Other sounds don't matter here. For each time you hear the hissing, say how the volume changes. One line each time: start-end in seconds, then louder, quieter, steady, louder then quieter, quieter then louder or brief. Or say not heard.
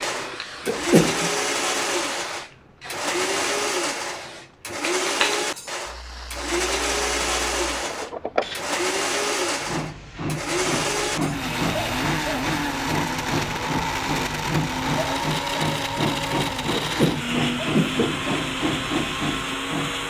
0.0-20.0 louder.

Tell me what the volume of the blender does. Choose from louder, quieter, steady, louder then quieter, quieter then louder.
steady.